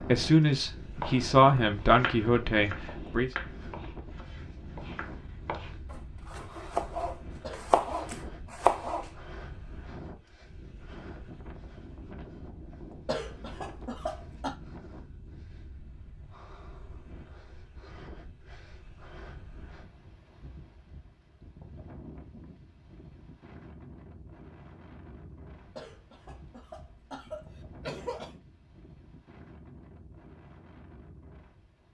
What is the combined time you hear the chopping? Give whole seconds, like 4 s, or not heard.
8 s.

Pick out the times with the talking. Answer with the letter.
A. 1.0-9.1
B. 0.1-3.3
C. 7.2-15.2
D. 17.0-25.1
B.